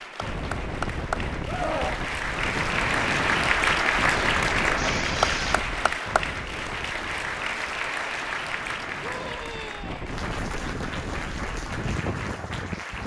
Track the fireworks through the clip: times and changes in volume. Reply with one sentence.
The fireworks can't be heard in this clip.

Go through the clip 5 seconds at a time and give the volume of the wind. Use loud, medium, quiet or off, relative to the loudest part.
loud, medium, loud.